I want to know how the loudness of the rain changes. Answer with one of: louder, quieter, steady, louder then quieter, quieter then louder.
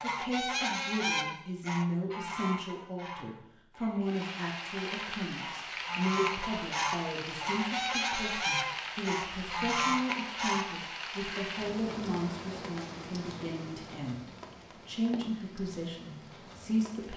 quieter.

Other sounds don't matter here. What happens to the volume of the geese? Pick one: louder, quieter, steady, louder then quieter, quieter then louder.
quieter then louder.